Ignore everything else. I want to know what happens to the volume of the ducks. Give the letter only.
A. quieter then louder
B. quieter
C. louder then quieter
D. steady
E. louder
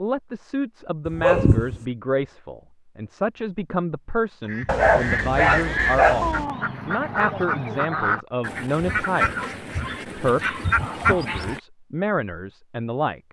D.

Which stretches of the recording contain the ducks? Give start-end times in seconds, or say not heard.
4.5-11.6.